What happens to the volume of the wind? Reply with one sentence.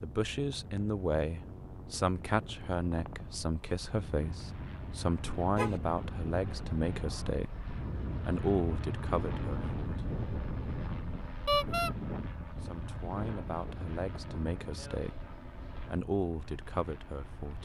The volume of the wind goes up, then down.